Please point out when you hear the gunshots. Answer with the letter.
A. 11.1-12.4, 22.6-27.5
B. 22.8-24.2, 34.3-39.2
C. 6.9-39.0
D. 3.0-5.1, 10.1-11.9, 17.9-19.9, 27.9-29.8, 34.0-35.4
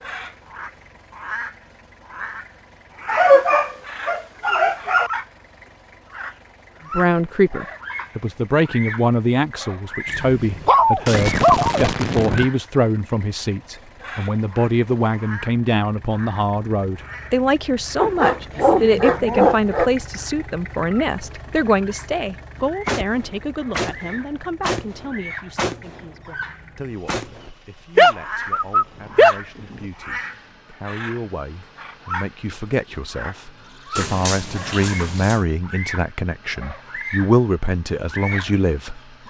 A.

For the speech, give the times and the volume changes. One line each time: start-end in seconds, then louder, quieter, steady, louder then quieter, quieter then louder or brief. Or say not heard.
6.9-39.0 quieter then louder.